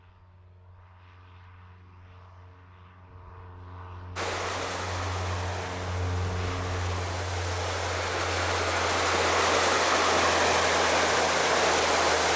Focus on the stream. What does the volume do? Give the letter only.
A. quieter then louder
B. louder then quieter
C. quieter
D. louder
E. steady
D.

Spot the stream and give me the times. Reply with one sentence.
The stream can be heard from 4.2 to 12.3 s.